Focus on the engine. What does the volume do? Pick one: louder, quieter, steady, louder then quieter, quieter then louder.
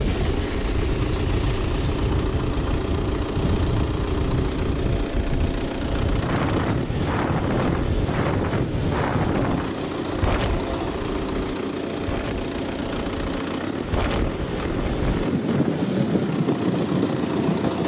steady.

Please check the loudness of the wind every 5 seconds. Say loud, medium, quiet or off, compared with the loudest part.
medium, loud, medium, loud.